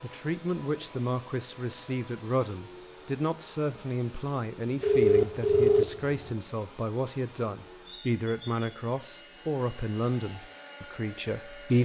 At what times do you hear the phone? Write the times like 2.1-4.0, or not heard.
4.8-6.3.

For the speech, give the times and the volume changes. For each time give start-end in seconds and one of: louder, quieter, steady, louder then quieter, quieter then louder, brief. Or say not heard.
0.0-11.8 steady.